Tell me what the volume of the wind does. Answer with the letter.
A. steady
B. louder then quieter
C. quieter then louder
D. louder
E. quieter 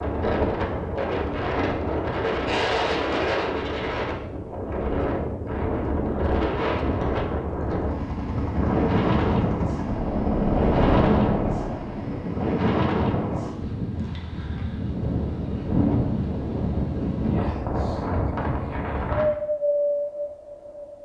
A.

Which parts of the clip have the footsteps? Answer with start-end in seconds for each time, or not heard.
not heard.